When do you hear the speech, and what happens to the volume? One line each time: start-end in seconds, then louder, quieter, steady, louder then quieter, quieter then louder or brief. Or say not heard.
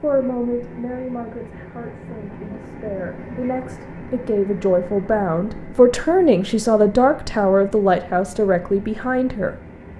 0.0-9.6 louder.